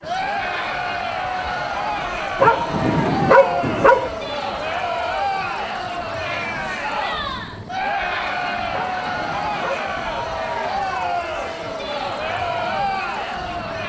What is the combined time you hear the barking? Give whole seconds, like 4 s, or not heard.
3 s.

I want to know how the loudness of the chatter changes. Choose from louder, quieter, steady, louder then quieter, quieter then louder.
steady.